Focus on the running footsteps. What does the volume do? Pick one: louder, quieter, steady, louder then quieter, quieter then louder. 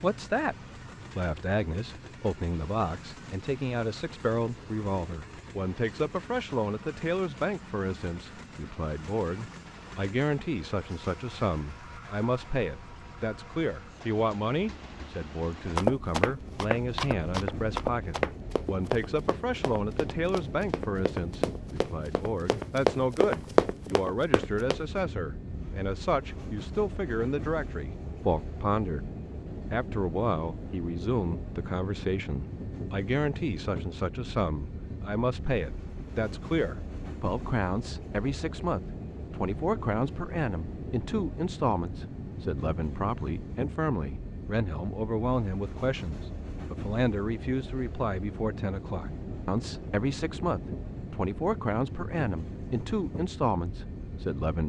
quieter then louder.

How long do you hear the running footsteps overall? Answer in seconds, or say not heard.
9 s.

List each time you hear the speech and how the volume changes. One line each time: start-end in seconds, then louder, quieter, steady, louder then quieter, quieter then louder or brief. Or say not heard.
0.0-0.6 brief
1.1-29.1 steady
29.7-54.6 steady.